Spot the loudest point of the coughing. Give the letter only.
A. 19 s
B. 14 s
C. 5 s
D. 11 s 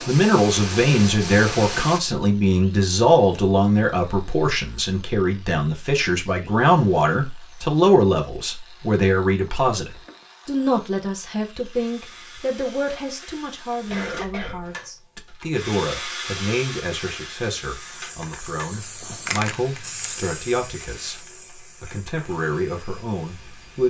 B.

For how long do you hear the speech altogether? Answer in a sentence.
The speech can be heard for 24 seconds in total.